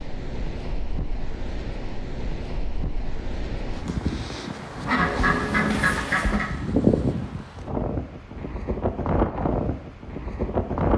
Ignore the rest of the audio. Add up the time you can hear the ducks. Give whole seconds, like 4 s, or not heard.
2 s.